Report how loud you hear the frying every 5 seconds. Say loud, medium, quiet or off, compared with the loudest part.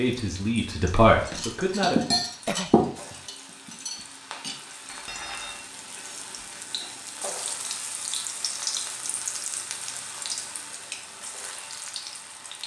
medium, loud, loud.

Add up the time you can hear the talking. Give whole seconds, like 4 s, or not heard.
2 s.